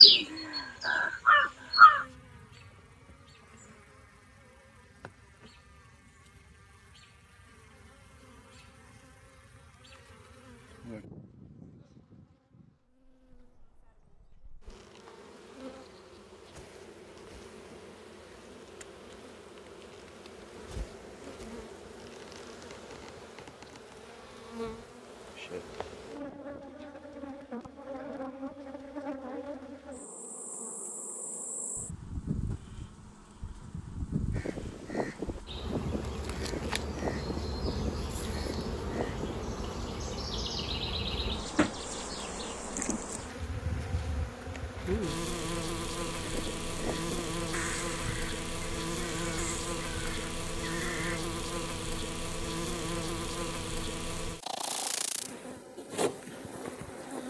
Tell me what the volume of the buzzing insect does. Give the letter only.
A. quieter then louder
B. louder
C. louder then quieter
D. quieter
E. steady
B.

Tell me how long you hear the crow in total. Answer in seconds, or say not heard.
12 s.